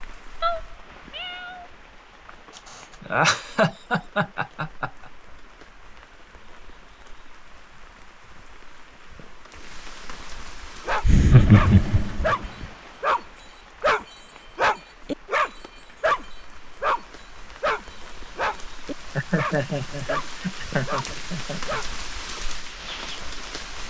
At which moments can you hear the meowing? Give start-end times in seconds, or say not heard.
0.4-1.6.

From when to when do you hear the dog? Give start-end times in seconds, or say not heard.
10.8-22.0.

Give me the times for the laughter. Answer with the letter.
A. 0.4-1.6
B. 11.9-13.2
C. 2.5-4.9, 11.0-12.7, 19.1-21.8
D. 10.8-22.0
C.